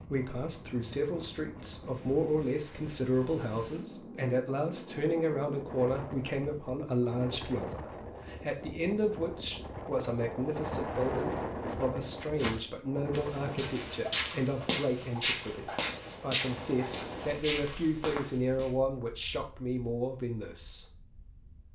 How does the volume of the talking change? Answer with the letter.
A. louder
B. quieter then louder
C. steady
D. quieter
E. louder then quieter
C.